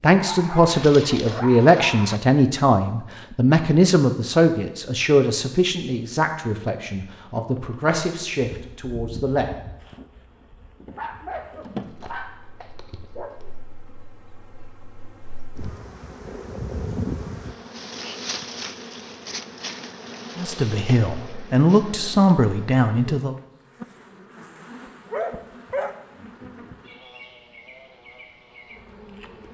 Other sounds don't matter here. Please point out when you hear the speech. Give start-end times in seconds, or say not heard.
0.0-9.5, 20.4-23.4.